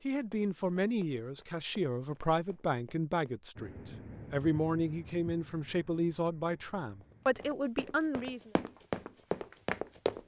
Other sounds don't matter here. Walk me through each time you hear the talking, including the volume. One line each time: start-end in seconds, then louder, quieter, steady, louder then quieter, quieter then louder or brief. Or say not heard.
0.1-8.5 steady.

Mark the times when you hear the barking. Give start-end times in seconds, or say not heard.
not heard.